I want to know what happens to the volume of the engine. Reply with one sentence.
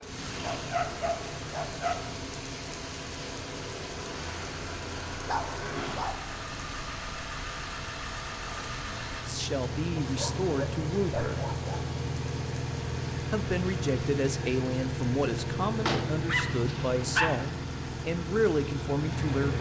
The volume of the engine goes up.